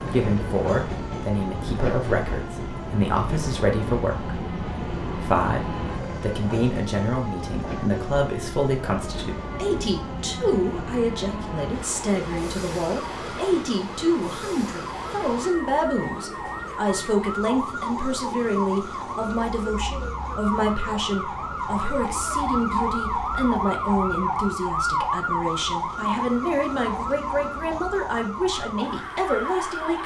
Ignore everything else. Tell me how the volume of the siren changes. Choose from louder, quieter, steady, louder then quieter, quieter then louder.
louder.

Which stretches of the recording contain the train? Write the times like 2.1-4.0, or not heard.
0.0-30.0.